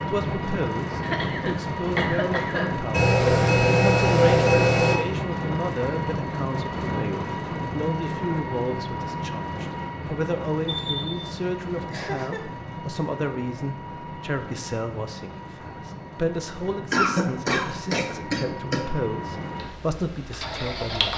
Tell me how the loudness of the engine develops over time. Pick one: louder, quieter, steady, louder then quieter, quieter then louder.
quieter.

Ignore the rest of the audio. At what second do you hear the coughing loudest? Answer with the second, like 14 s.
17 s.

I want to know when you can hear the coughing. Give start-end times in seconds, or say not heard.
1.0-2.8, 11.9-12.4, 16.9-18.9.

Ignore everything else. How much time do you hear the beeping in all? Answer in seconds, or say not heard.
3 s.